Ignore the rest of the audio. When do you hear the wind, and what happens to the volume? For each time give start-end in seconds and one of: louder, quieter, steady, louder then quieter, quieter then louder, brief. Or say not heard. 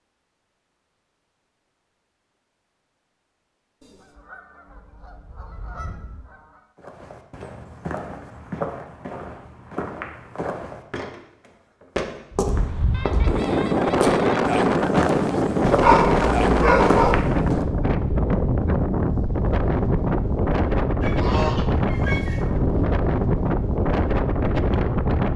12.3-25.3 steady.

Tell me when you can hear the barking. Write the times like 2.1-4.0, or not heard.
15.7-17.2.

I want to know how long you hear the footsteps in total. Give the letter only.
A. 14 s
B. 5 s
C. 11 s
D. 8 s
C.